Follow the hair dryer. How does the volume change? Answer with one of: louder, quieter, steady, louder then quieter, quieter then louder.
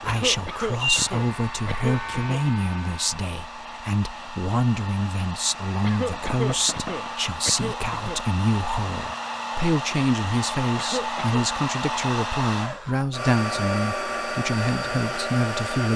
louder.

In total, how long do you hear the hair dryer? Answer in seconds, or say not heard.
16 s.